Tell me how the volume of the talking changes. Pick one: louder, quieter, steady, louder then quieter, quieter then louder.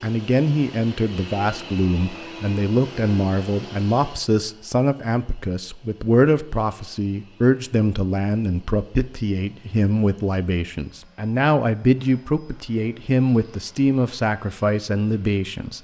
steady.